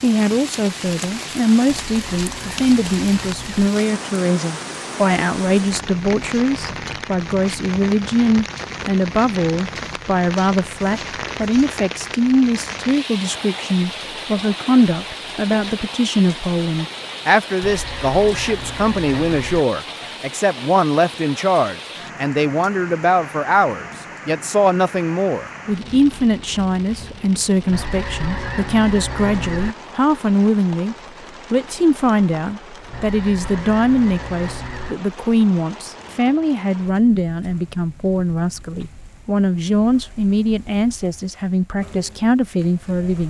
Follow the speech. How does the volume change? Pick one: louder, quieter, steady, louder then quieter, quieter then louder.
steady.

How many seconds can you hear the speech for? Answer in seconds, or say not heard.
43 s.